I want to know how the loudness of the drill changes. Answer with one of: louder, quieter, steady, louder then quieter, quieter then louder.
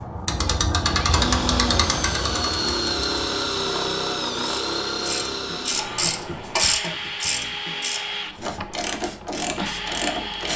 quieter.